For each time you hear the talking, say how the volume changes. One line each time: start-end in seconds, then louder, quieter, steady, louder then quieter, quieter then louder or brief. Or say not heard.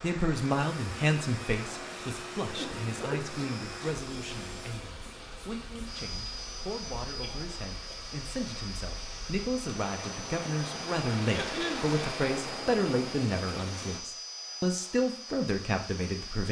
0.0-16.4 quieter then louder.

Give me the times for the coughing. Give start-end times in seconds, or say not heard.
2.5-3.4, 7.2-8.0, 11.3-11.9.